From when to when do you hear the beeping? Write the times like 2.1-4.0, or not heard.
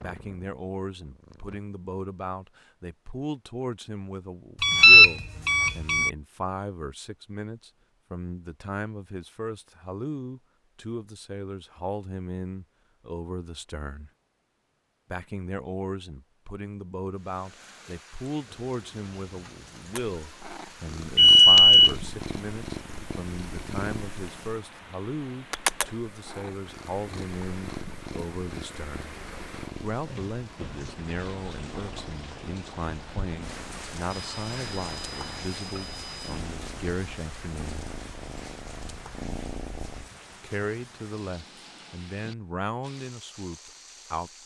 4.6-6.1, 21.1-21.9, 34.1-36.4.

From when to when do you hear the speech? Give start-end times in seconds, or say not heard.
0.0-14.1, 15.1-29.1, 29.8-37.9, 40.3-44.4.